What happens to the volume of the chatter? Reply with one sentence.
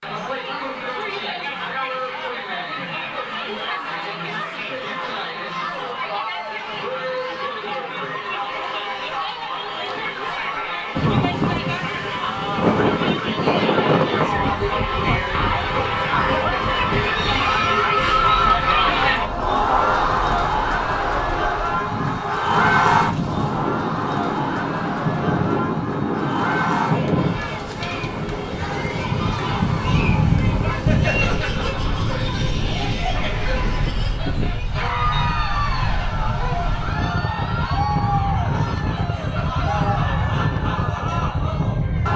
The volume of the chatter goes up, then down.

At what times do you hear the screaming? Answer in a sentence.
The screaming can't be heard in this clip.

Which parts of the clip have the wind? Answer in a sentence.
The wind can be heard from 10.9 to 42.1 s.